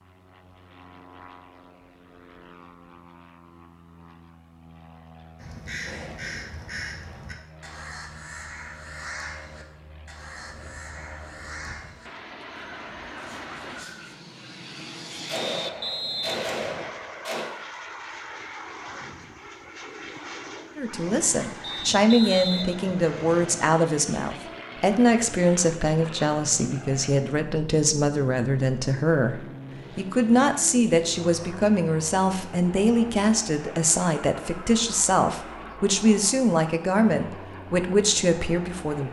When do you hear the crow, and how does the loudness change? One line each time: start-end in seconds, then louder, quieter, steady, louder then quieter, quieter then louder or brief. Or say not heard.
5.3-14.2 quieter.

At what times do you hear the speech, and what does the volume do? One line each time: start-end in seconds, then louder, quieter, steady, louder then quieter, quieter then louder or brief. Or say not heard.
20.8-39.0 steady.